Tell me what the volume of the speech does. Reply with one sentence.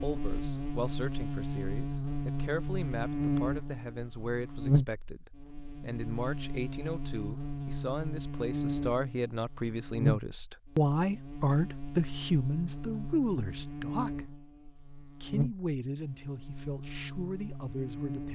The volume of the speech goes up, then down.